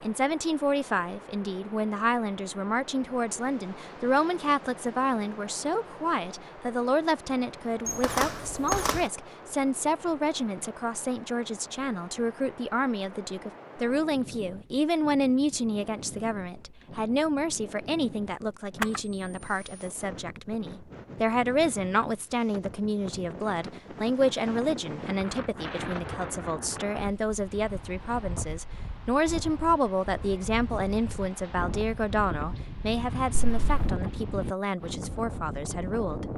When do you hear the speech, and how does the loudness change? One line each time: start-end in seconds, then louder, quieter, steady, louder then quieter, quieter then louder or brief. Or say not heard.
0.0-36.2 steady.